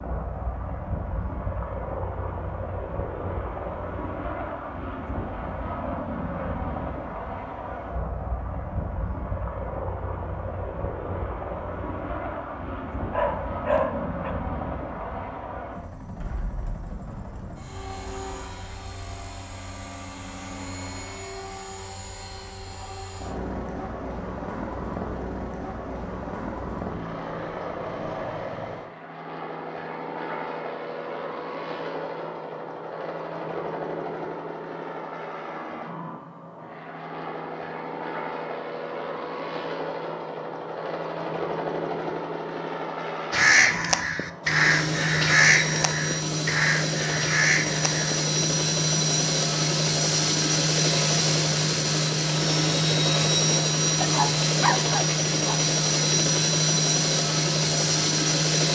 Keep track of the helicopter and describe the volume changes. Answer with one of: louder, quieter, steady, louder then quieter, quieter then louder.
louder.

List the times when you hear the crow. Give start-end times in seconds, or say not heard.
43.3-48.2.